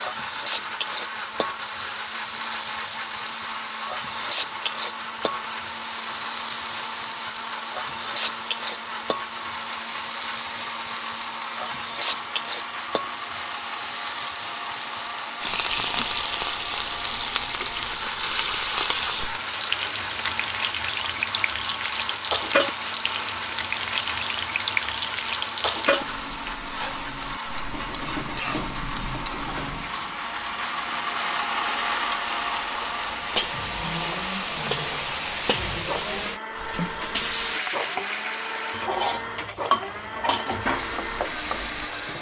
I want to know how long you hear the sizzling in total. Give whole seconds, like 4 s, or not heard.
42 s.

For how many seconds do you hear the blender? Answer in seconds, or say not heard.
42 s.